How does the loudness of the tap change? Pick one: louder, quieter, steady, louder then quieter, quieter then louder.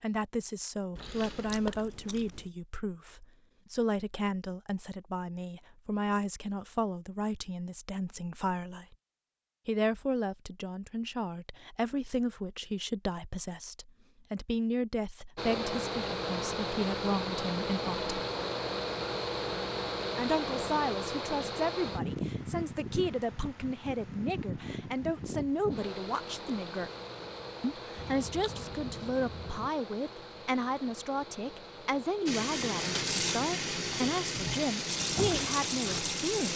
steady.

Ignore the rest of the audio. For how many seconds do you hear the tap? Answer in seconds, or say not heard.
4 s.